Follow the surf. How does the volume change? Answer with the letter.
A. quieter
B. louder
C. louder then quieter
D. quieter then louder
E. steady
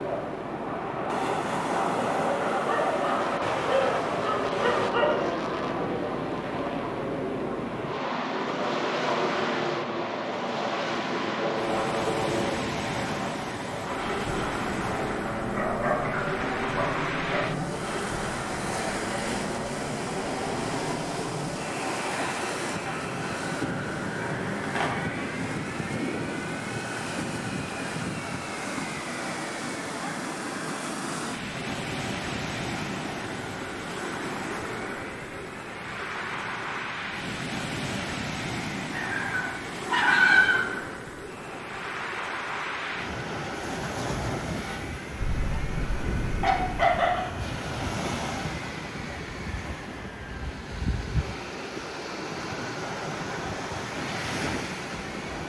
E.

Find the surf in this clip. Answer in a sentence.
You can hear the surf from 0.0 to 55.4 s.